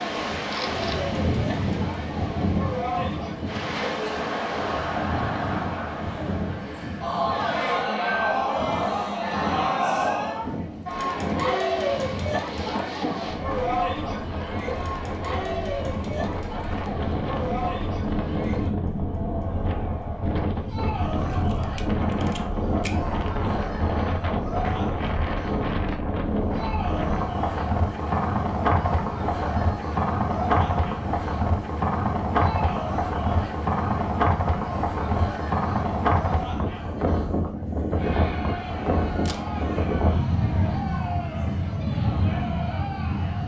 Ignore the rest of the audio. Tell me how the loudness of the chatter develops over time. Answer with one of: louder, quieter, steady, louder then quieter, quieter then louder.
quieter.